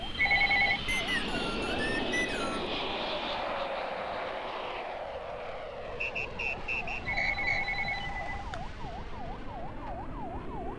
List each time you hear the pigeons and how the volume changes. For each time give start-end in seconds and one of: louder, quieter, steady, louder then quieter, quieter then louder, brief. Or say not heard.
not heard.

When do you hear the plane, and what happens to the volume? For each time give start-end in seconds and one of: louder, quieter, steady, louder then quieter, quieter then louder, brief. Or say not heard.
0.0-10.7 quieter.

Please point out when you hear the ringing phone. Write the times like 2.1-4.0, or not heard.
0.1-0.8, 7.0-8.7.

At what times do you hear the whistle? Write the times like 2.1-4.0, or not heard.
0.8-2.7, 6.0-7.6.